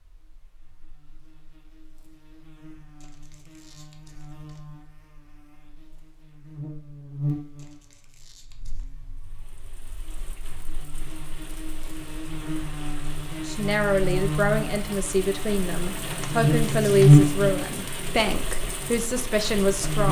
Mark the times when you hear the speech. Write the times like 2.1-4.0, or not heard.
13.4-20.0.